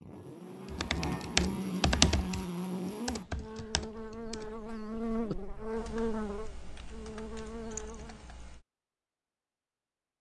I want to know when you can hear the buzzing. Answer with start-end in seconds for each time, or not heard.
0.0-8.2.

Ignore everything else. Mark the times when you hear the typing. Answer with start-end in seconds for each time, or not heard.
0.7-8.7.